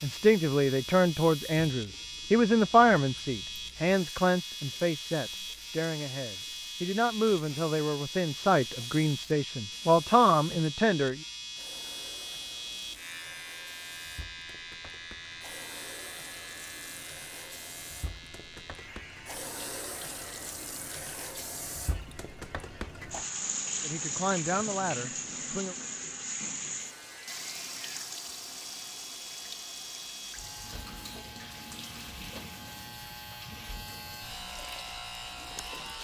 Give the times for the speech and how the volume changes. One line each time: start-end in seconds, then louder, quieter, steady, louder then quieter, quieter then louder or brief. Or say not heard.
0.0-11.2 quieter then louder
23.8-25.8 brief.